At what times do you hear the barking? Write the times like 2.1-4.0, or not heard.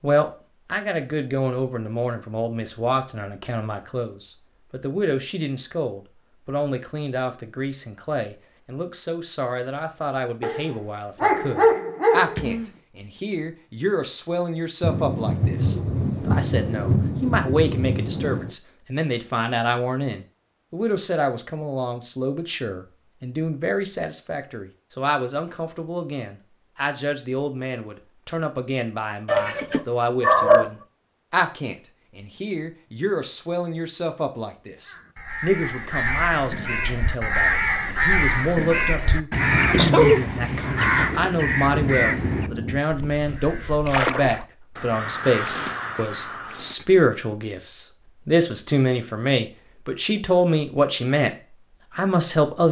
10.4-12.7, 29.2-30.7, 39.7-41.3.